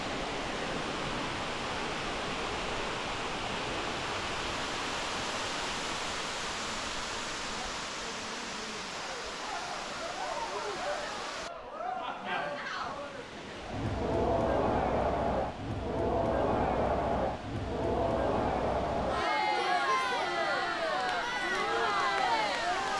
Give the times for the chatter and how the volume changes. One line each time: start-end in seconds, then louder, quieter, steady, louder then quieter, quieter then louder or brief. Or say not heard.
8.9-22.9 louder.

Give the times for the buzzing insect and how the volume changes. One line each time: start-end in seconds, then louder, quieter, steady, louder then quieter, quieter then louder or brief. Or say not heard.
not heard.